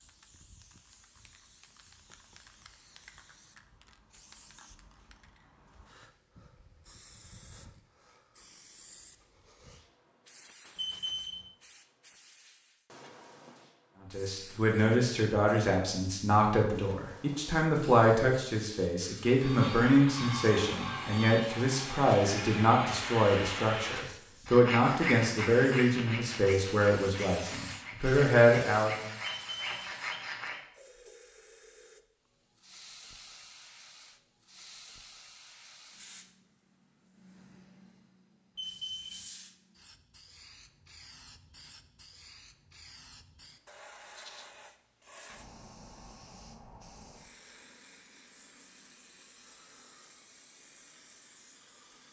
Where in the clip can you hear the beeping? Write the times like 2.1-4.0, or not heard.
10.8-11.4, 29.2-29.6, 38.5-39.2.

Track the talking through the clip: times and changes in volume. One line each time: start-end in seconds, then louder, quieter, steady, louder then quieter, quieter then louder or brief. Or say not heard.
14.0-29.1 steady.